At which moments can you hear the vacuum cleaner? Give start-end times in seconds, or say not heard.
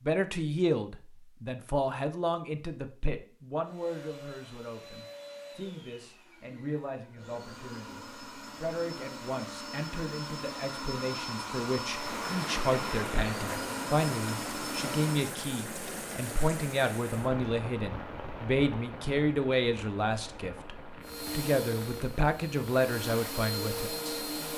3.6-15.3, 21.0-24.5.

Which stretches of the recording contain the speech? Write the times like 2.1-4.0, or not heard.
0.0-24.2.